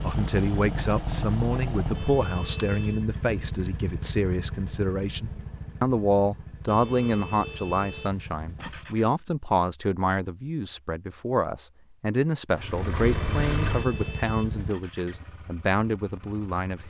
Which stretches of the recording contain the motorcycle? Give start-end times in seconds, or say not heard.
0.0-9.2, 12.5-16.8.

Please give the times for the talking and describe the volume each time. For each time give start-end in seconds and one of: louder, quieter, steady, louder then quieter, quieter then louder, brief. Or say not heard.
0.0-16.8 steady.